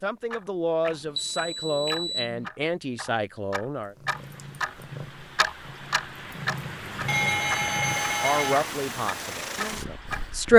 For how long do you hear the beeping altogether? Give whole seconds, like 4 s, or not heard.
3 s.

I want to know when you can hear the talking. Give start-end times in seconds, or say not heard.
0.0-4.0, 8.2-10.5.